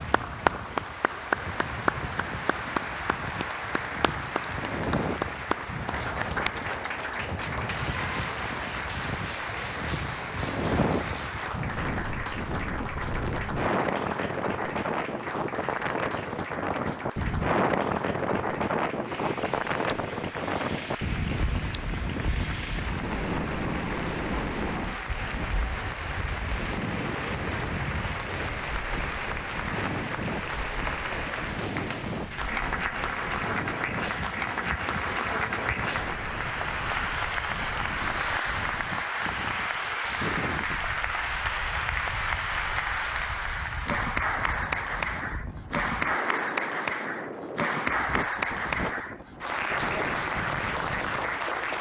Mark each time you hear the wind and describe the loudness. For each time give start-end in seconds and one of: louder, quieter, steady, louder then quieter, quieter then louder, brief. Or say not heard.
0.0-51.7 louder then quieter.